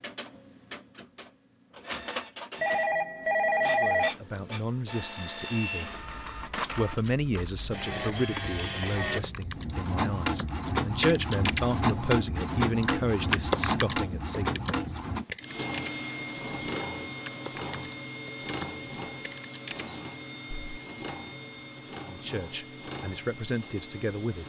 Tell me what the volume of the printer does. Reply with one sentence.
The loudness of the printer goes up, then down.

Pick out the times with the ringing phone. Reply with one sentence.
You can hear the ringing phone from 2.6 to 4.1 s.